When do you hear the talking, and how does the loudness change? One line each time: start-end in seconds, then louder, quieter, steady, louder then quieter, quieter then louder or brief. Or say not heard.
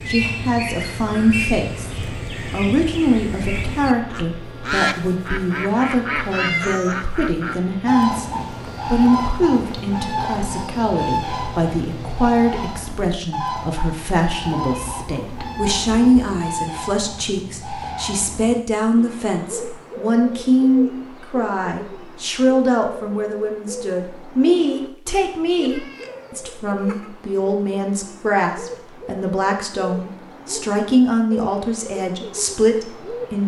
0.1-33.4 steady.